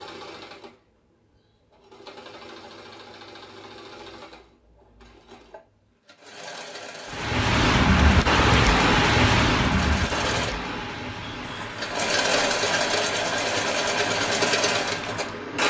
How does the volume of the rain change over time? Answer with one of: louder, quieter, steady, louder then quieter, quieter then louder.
quieter.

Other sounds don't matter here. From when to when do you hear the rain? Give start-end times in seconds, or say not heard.
7.1-15.6.